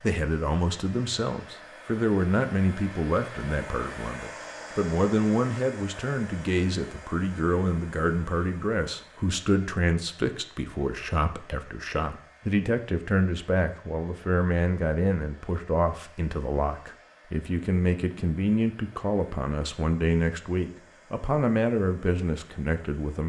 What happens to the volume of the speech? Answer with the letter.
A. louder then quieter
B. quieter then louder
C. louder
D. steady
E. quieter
D.